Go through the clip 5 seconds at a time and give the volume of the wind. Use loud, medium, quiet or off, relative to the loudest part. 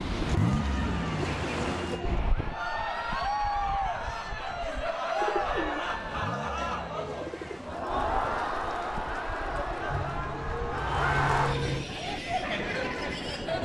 loud, medium, medium.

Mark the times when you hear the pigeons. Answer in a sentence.
The pigeons can be heard from 0.0 to 2.2 s, from 5.2 to 7.6 s and from 9.9 to 11.8 s.